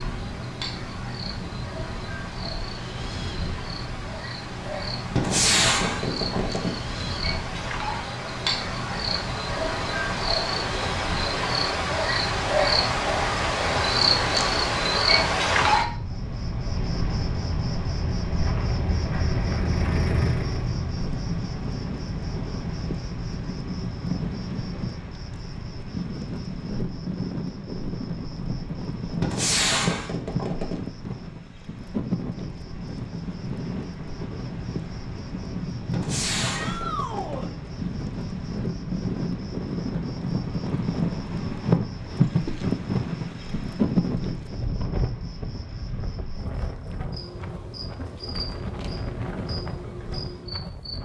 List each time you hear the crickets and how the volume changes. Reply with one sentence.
The crickets can be heard from 0.0 to 51.0 s, getting louder then quieter.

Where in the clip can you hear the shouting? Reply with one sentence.
The shouting can be heard from 36.5 to 37.5 s.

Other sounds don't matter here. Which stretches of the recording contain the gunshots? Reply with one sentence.
You can hear the gunshots from 5.2 to 6.8 s, from 29.2 to 30.8 s and from 35.9 to 37.5 s.